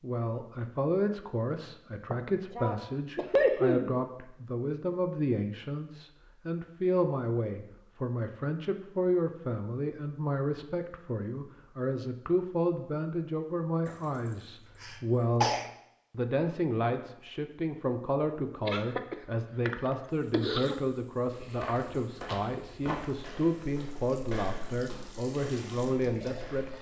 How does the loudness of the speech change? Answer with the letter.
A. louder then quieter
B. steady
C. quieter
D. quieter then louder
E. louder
B.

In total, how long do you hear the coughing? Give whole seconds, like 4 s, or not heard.
6 s.